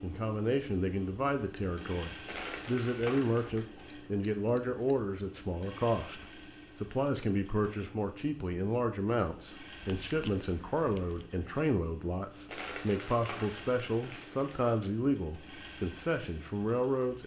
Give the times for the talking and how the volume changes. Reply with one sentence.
The talking can be heard from 0.0 to 17.2 s, at a steady volume.